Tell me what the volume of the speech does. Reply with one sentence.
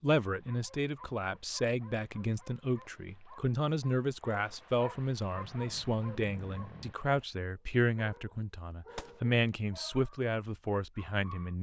The volume of the speech stays about the same.